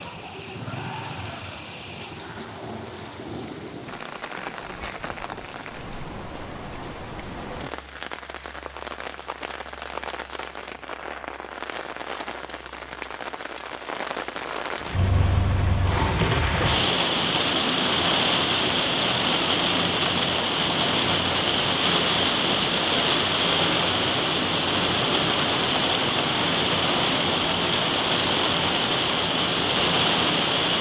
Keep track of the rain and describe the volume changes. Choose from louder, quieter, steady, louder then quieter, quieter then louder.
louder.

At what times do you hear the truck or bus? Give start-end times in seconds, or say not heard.
14.9-16.7.